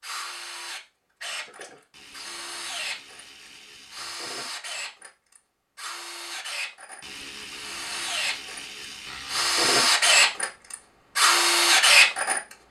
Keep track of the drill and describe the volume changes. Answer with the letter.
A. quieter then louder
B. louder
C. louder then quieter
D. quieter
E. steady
B.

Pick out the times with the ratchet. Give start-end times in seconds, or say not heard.
1.9-4.3, 7.0-9.7.